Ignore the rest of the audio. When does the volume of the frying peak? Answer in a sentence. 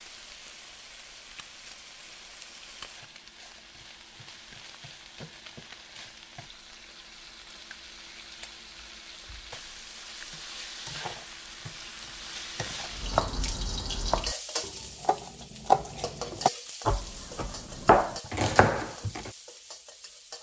The volume of the frying peaks at 14 seconds.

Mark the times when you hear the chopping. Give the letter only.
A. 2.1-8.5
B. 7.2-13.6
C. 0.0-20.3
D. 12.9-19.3
D.